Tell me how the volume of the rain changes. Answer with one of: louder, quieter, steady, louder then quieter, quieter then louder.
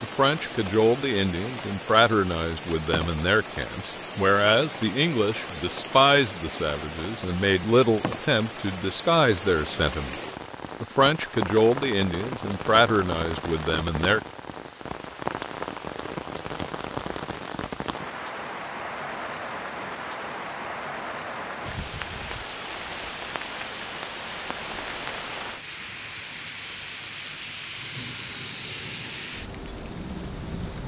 steady.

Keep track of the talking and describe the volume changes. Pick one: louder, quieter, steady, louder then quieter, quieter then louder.
steady.